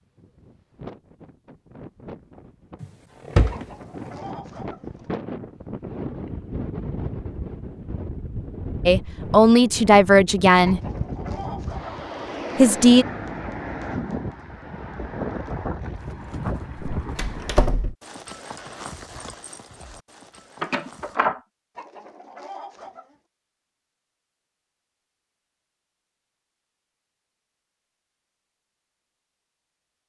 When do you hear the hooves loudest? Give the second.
19 s.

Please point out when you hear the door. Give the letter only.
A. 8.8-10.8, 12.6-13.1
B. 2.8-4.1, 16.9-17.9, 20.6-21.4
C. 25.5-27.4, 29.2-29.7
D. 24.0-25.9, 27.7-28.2
B.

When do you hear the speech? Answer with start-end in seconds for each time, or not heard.
8.8-10.8, 12.6-13.1.